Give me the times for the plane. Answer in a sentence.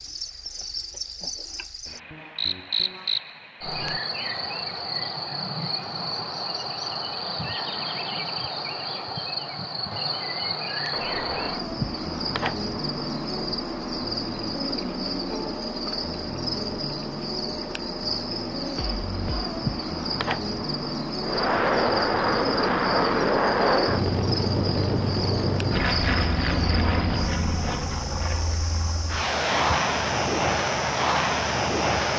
The plane can be heard from 21.2 to 32.1 s.